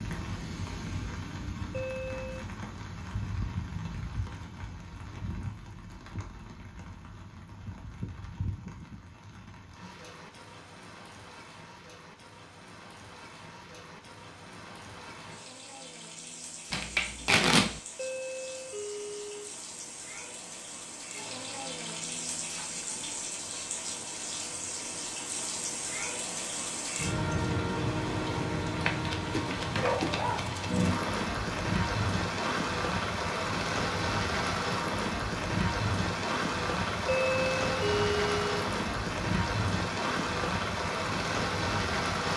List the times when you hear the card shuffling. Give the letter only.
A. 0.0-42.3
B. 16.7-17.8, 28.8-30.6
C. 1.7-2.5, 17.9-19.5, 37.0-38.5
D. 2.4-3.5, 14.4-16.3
B.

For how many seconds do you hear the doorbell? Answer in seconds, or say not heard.
4 s.